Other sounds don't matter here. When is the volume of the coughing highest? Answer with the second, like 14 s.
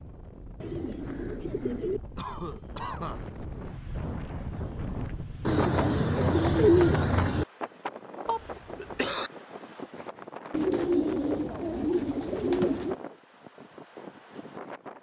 9 s.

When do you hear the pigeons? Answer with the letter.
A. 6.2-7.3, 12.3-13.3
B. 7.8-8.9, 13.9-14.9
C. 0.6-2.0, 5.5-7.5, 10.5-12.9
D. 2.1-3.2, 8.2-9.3
C.